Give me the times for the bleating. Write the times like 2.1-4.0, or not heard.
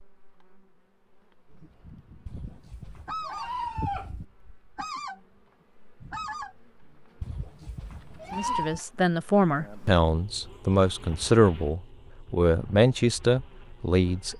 2.2-4.2, 7.2-8.8.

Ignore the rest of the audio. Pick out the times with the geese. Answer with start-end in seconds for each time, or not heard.
1.5-3.5, 4.3-5.2, 6.0-8.3.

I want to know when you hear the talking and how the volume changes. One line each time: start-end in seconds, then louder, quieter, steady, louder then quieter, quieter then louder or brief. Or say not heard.
8.3-14.3 steady.